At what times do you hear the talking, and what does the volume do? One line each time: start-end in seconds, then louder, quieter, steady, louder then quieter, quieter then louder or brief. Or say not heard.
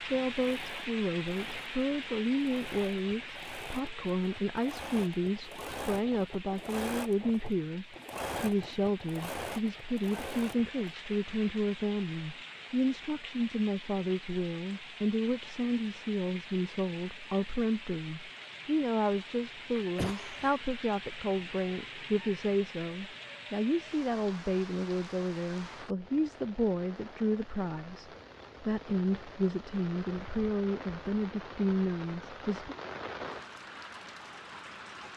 0.0-32.8 steady.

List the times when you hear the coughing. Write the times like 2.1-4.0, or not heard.
19.8-20.6.